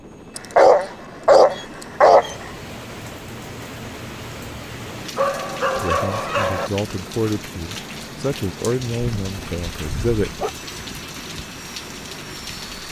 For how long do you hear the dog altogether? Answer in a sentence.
The dog can be heard for 5 seconds in total.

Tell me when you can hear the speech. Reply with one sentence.
The speech can be heard from 5.8 to 10.4 s.